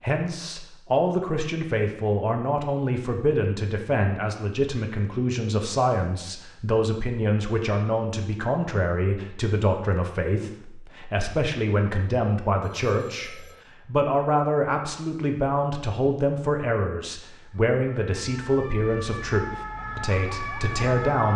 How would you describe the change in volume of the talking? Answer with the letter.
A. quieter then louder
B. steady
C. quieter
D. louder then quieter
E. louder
B.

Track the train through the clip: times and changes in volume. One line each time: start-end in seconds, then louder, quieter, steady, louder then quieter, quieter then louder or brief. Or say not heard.
not heard.